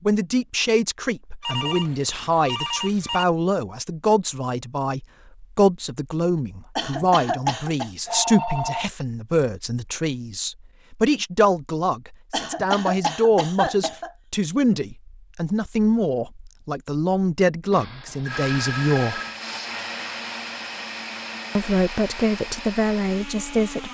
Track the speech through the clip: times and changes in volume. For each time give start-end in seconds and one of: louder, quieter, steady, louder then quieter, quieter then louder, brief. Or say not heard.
0.0-19.2 steady
21.6-23.9 brief.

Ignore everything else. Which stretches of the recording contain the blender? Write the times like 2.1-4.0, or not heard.
18.2-23.9.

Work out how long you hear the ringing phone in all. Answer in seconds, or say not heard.
4 s.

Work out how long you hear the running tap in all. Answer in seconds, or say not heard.
not heard.